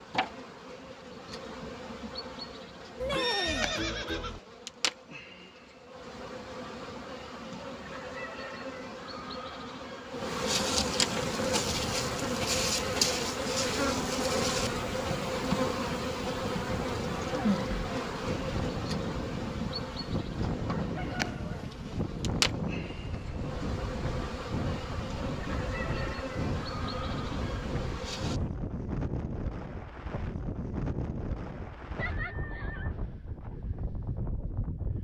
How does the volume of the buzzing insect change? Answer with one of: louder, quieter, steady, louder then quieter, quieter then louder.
louder then quieter.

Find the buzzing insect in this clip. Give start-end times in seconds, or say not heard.
0.0-28.4.